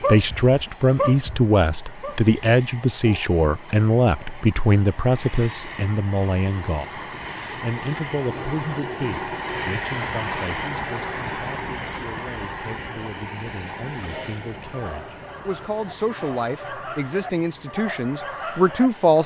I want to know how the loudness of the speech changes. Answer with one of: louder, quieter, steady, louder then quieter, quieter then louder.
quieter then louder.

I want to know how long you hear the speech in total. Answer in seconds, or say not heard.
19 s.